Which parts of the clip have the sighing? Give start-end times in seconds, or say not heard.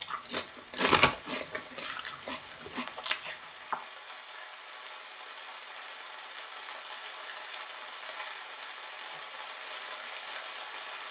not heard.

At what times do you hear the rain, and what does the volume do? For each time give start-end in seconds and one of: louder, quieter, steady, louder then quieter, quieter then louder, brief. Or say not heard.
0.0-11.0 louder.